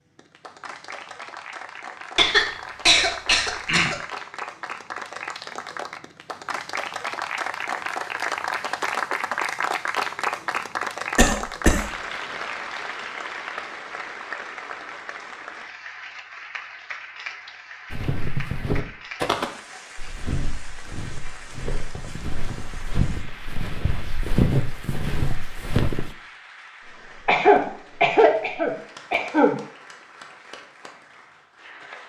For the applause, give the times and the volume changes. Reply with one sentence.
The applause can be heard from 0.1 to 32.0 s, getting louder then quieter.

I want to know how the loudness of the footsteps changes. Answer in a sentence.
The loudness of the footsteps goes down, then up.